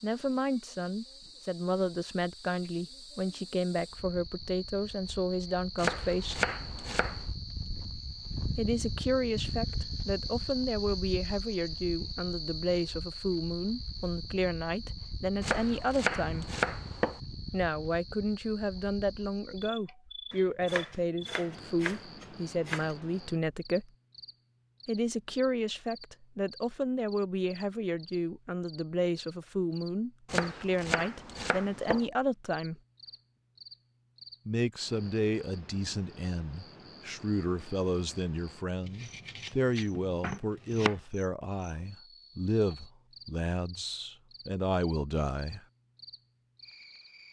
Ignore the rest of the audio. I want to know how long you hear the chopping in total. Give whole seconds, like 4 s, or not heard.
10 s.